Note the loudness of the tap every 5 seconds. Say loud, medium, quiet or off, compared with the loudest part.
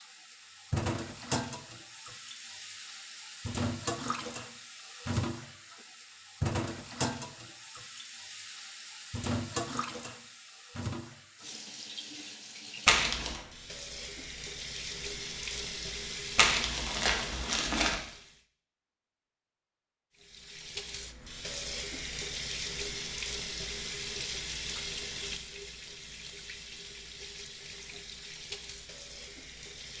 loud, loud, medium, loud, loud, medium.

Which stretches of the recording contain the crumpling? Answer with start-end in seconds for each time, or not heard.
12.8-13.4, 16.4-18.0.